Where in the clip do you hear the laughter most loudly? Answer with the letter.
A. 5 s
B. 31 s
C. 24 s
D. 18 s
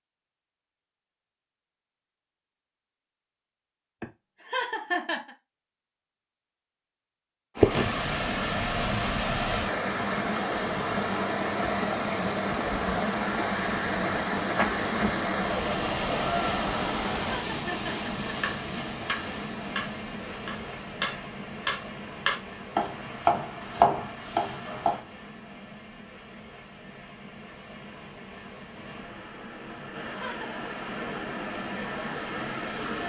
A.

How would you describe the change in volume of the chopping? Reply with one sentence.
The volume of the chopping goes up.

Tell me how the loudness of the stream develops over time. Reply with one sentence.
The loudness of the stream goes down, then up.